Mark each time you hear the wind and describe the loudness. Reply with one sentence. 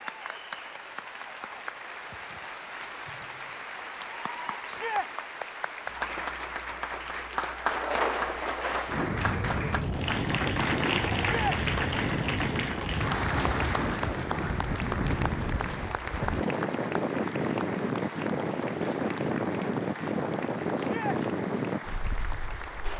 The wind can be heard from 7.7 to 22.9 s, at a steady volume.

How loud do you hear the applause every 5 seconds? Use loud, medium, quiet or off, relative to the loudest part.
medium, loud, loud, medium, medium.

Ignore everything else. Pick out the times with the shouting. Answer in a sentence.
You can hear the shouting from 4.7 to 5.1 s, from 11.2 to 11.6 s and from 20.8 to 21.2 s.